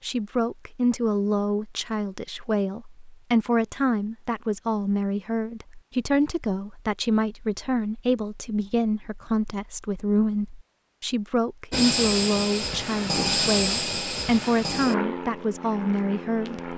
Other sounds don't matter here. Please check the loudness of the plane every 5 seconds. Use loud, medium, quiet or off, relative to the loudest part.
off, off, loud, medium.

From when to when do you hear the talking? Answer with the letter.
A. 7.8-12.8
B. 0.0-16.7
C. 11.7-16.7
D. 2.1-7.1
B.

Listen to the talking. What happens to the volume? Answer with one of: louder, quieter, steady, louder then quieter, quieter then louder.
steady.